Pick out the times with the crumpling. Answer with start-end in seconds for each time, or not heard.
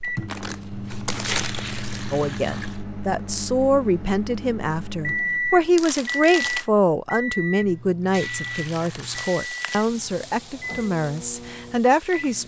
0.2-2.0, 5.8-6.7, 8.4-9.9.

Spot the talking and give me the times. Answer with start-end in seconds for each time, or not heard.
2.1-12.4.